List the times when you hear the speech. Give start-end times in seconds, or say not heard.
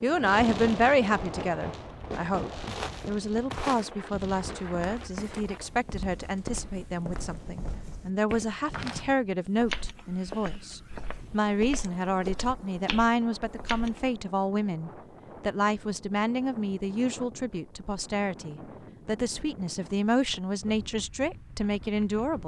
0.0-22.4.